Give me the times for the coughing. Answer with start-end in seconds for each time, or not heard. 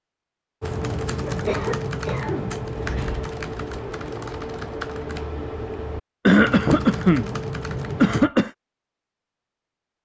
1.2-3.3, 6.2-7.3, 8.0-8.6.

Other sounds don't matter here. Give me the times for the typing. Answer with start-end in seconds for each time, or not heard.
0.6-8.3.